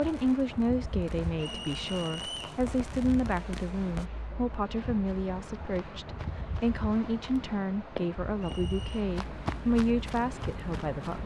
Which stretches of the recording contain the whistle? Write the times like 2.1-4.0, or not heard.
1.4-2.6, 8.4-9.1.